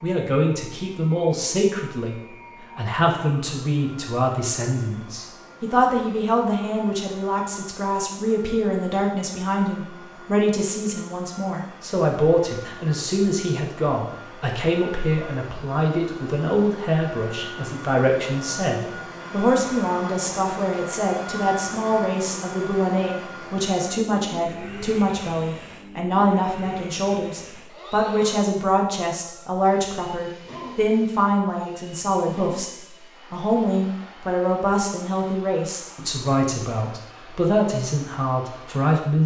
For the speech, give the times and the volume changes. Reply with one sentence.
You can hear the speech from 0.0 to 39.2 s, at a steady volume.